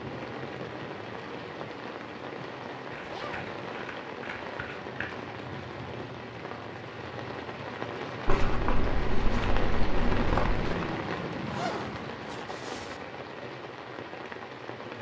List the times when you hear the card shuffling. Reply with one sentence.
You can hear the card shuffling from 2.9 to 5.2 s and from 8.2 to 10.8 s.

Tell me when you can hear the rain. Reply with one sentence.
The rain can be heard from 0.0 to 14.9 s.